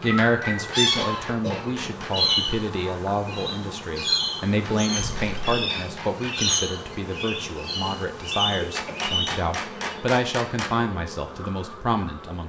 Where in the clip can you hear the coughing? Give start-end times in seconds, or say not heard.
0.9-2.4, 5.0-5.5, 8.6-9.1.